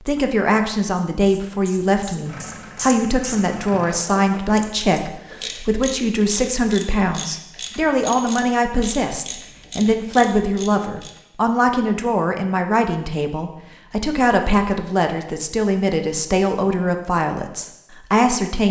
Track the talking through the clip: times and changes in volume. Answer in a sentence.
The talking can be heard from 0.1 to 18.6 s, at a steady volume.